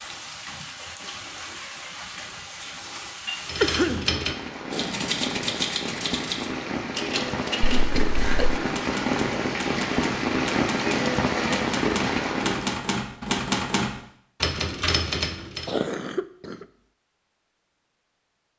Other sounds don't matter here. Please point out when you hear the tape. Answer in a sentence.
The tape can't be heard in this clip.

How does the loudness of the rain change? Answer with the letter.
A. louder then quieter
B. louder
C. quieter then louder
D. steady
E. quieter
B.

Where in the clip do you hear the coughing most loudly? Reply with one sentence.
The volume of the coughing peaks at 4 seconds.